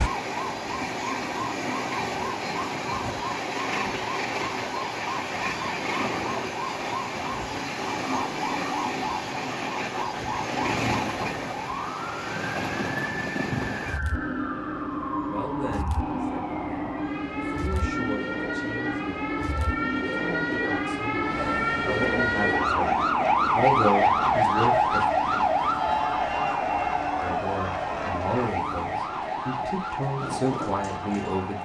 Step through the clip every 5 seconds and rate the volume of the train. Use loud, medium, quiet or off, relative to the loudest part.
loud, loud, loud, loud, loud, medium, medium.